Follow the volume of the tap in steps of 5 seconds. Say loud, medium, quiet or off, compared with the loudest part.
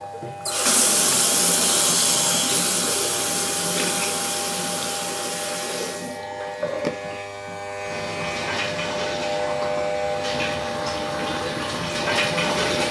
loud, medium, loud.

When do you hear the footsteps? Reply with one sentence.
You can't hear the footsteps here.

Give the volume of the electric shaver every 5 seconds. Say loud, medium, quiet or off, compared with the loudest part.
medium, loud, loud.